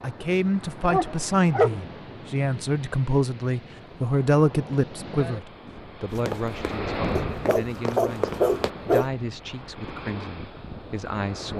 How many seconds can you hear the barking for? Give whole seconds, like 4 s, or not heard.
3 s.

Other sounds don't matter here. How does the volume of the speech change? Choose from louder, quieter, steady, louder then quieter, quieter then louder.
quieter.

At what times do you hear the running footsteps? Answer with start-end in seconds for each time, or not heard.
6.2-8.7.